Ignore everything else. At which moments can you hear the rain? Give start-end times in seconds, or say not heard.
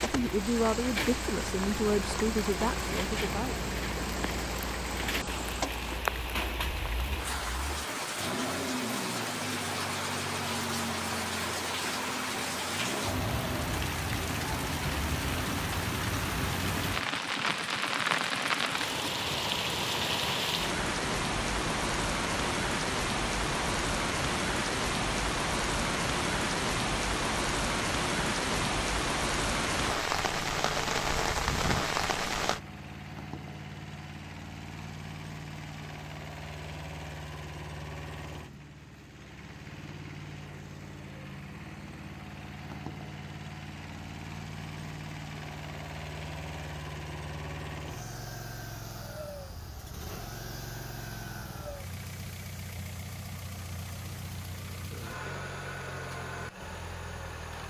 0.0-32.6.